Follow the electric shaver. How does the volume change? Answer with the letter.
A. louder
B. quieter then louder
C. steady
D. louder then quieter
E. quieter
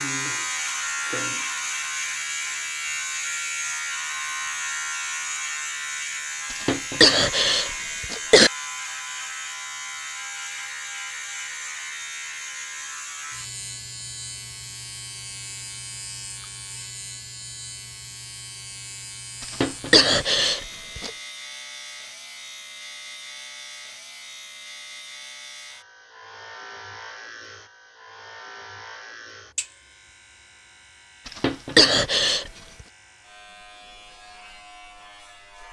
E.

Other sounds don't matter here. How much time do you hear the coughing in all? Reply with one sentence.
You can hear the coughing for 5 seconds altogether.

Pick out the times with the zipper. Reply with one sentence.
You can't hear the zipper here.